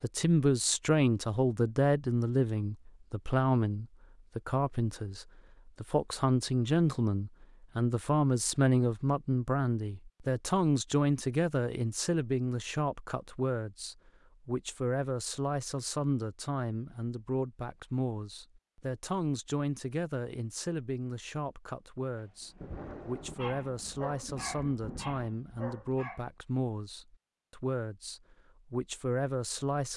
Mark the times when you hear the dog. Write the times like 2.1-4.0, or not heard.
22.1-26.3.